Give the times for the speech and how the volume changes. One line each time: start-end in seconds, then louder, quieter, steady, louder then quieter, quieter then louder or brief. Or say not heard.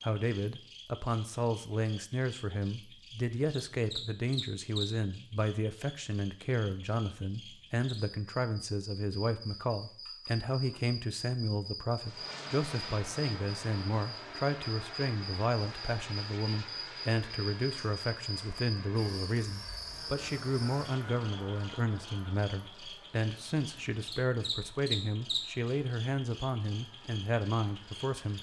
0.0-28.3 steady.